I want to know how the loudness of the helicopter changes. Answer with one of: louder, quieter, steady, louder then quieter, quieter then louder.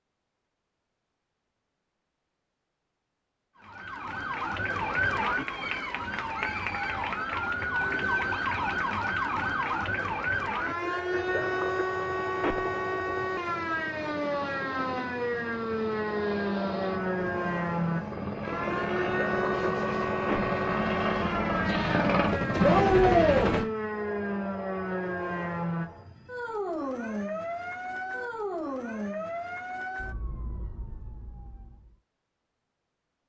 louder.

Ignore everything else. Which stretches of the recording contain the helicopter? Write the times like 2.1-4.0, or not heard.
11.1-23.6.